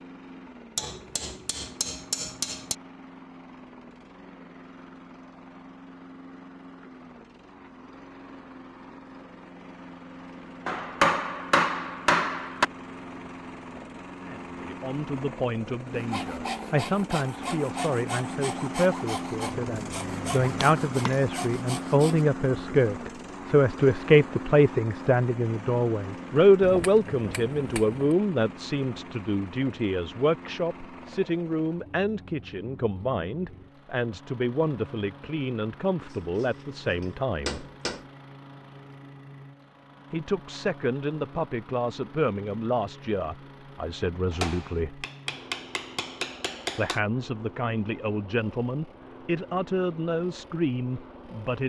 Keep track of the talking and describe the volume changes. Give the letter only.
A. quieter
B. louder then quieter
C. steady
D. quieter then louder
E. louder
B.